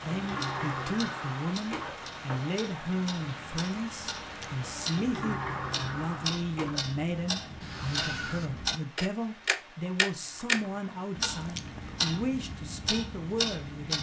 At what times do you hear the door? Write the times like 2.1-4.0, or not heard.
0.1-2.4, 4.9-6.9, 10.2-11.2.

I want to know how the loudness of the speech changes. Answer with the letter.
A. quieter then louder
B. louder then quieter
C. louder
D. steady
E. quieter
D.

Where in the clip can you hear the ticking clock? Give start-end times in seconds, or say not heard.
0.2-13.9.